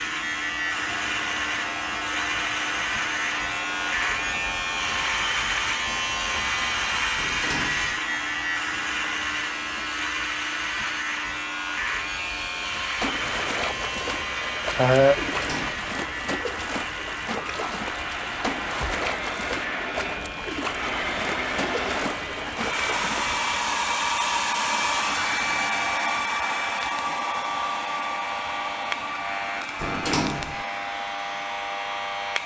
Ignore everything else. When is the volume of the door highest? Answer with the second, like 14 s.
30 s.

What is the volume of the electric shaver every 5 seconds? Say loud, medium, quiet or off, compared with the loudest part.
loud, loud, loud, medium, medium, medium, medium.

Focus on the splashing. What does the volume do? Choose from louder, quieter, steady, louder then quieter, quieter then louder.
steady.